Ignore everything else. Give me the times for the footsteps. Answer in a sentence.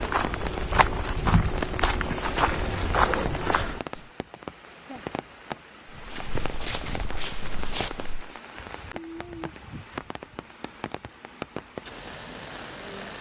The footsteps can be heard from 0.0 to 4.0 s and from 5.9 to 8.3 s.